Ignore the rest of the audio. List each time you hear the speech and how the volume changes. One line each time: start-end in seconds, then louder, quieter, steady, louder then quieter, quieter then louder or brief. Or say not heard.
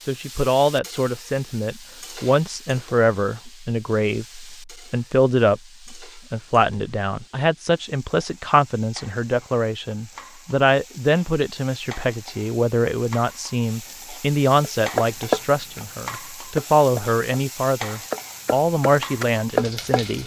0.1-20.2 steady.